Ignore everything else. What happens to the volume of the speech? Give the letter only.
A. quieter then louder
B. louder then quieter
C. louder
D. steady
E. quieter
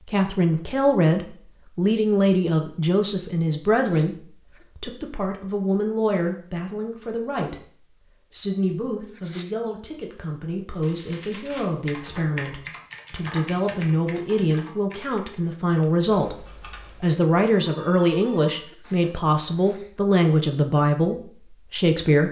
A.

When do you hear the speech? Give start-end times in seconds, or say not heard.
0.1-22.2.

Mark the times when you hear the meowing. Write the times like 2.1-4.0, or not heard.
not heard.